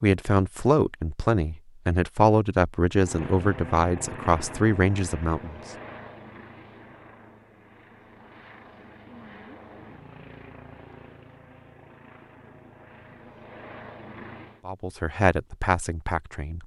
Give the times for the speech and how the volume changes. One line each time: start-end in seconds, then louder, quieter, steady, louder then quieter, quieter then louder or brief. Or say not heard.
0.0-5.6 steady
14.7-16.6 brief.